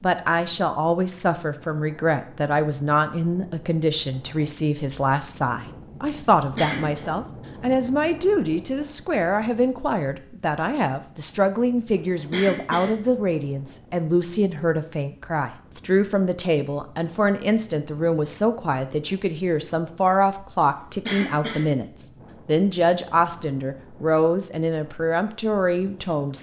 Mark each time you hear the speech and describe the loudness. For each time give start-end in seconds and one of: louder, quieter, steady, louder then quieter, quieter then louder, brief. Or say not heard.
0.0-26.3 steady.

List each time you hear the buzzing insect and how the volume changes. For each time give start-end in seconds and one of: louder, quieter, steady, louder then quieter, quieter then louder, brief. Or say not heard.
not heard.